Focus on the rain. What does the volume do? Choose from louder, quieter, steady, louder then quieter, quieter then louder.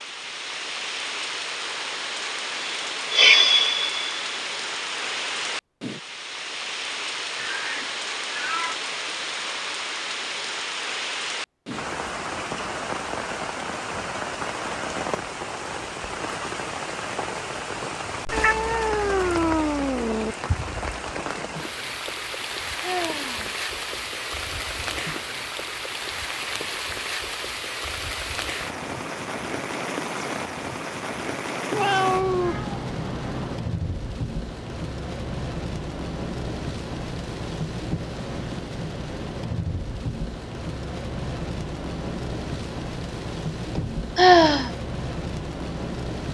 steady.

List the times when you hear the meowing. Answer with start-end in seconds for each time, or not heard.
7.3-8.8, 18.3-20.4, 31.7-33.6.